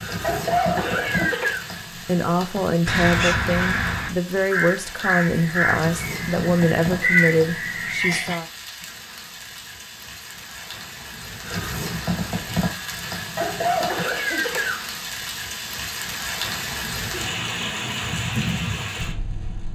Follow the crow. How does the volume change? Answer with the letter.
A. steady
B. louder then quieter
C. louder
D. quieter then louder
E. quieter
D.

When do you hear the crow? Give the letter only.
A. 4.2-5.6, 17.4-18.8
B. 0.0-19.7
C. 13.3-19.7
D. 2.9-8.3
D.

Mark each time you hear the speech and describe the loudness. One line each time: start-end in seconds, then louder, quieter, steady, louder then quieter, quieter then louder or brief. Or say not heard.
2.0-8.4 steady.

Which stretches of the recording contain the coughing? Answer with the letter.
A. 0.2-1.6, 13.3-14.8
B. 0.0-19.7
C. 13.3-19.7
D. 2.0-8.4
A.